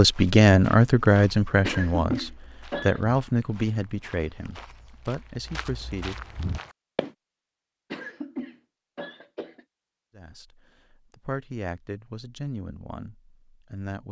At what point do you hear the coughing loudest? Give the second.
2 s.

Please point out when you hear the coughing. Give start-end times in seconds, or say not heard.
1.6-3.0, 7.9-9.7.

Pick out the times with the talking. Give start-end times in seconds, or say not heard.
0.0-6.3, 10.2-14.0.